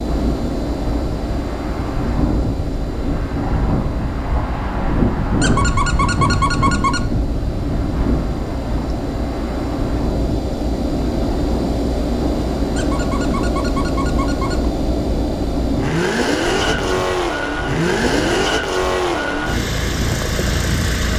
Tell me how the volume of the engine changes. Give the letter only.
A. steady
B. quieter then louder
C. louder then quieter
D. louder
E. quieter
D.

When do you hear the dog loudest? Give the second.
6 s.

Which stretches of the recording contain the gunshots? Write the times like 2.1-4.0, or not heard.
not heard.